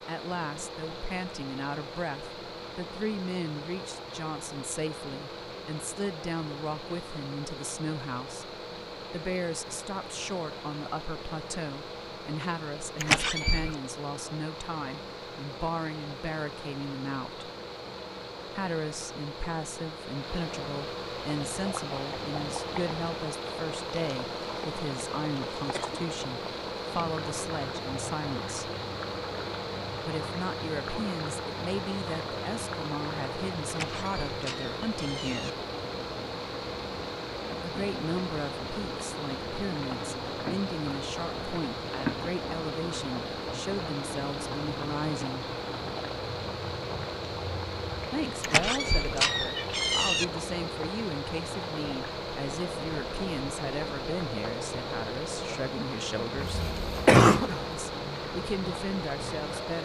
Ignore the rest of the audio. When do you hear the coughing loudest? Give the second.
57 s.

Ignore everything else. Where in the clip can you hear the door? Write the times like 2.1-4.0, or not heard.
13.0-13.8, 33.6-35.5, 48.4-50.2.